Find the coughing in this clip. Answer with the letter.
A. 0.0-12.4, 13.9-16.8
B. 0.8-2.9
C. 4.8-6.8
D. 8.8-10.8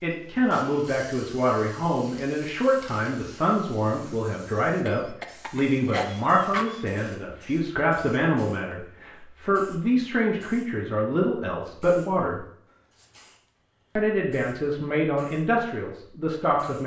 C.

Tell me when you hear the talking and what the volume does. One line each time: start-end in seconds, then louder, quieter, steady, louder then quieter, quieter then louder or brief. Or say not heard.
0.0-12.4 steady
13.9-16.8 brief.